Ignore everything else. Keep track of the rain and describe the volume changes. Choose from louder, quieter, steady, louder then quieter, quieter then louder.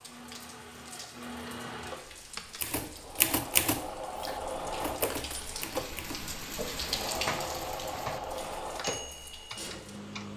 louder then quieter.